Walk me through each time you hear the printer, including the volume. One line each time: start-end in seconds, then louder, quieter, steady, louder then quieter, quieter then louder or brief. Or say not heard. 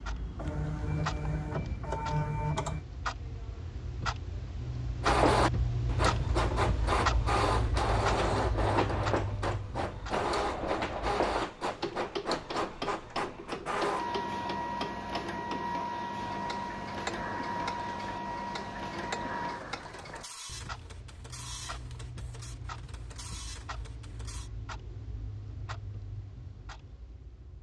0.0-2.9 brief
5.0-24.5 quieter.